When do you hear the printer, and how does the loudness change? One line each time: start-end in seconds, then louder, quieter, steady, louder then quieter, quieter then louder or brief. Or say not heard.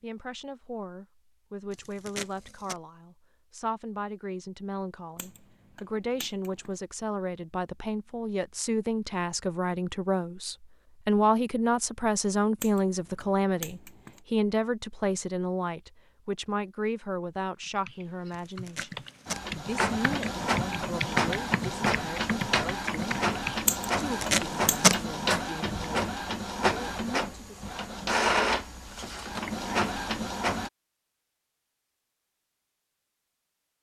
19.2-30.7 steady.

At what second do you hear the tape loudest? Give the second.
25 s.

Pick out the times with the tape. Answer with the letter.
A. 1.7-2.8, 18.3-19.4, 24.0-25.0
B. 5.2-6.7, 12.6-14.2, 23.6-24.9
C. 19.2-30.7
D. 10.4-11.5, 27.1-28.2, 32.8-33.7
A.